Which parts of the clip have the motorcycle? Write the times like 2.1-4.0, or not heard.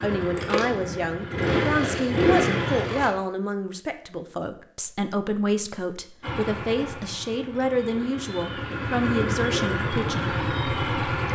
0.0-3.1, 6.2-11.3.